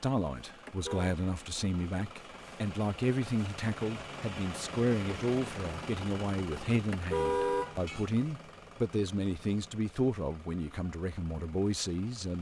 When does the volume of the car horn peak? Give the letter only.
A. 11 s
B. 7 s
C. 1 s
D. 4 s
B.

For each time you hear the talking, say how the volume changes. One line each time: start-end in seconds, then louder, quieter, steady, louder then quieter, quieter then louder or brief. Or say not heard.
0.0-12.3 steady.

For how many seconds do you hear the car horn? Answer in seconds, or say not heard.
2 s.